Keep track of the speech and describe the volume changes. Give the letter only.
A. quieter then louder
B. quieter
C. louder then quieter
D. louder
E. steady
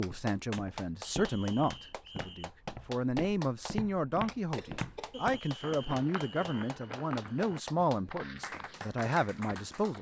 E.